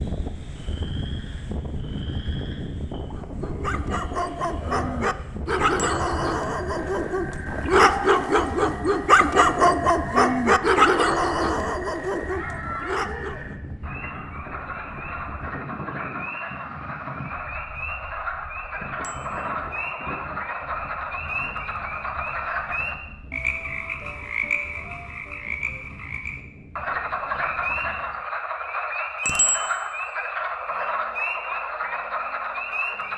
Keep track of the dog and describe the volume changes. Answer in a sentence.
The volume of the dog goes up, then down.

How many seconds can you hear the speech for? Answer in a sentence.
The speech can't be heard in this clip.